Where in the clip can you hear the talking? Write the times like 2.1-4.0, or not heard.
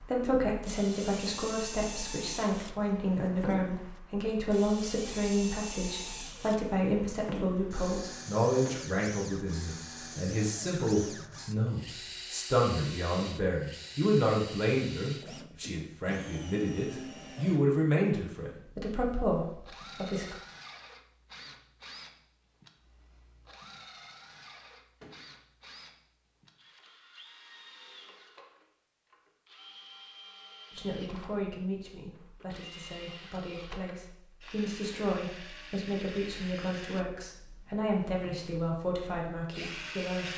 0.0-20.4, 30.7-40.3.